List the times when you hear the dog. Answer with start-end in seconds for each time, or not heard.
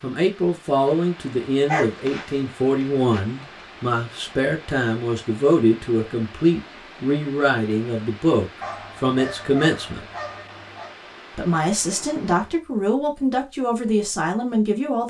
1.6-3.2, 8.6-10.9.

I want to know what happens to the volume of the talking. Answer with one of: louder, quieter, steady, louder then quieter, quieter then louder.
steady.